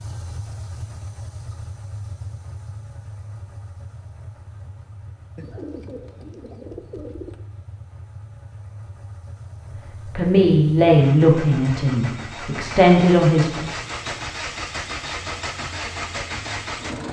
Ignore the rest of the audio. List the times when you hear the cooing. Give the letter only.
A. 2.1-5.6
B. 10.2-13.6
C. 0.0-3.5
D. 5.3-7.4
D.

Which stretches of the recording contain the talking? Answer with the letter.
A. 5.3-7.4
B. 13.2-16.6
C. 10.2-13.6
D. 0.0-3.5
C.